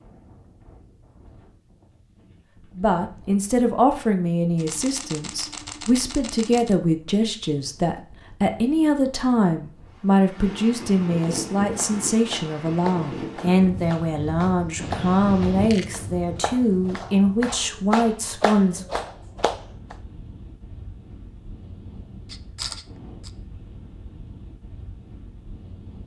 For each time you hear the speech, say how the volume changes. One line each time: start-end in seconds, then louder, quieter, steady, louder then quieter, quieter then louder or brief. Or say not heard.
2.8-18.8 steady.